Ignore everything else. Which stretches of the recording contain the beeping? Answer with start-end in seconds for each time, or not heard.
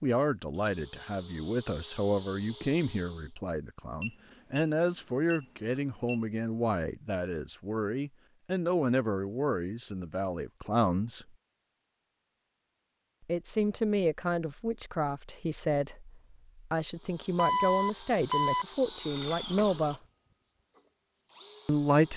4.0-6.2, 17.4-18.6.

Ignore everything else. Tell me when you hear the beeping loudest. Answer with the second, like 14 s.
18 s.